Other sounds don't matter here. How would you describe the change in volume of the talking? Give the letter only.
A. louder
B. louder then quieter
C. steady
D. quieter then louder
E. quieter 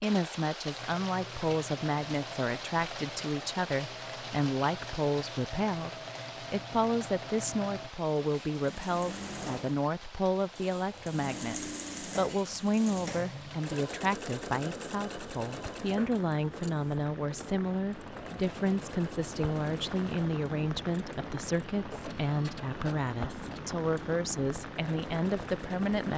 C.